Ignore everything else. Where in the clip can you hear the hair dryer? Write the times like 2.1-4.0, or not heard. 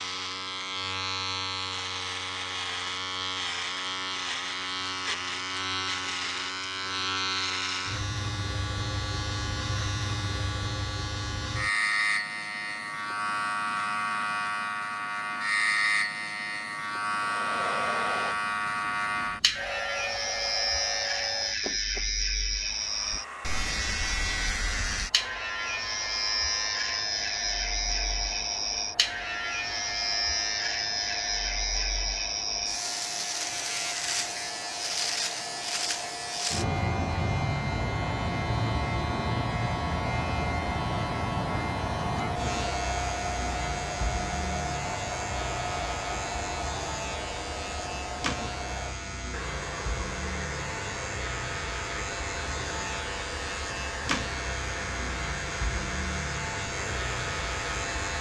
17.1-58.1.